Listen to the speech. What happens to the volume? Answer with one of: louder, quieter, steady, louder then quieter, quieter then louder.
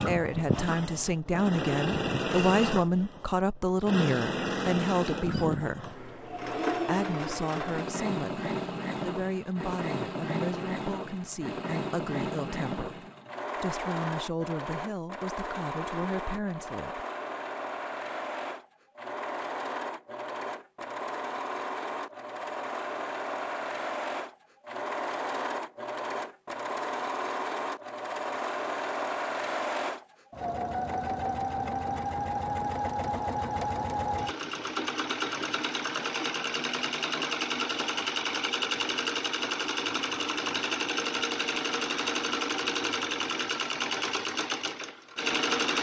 quieter.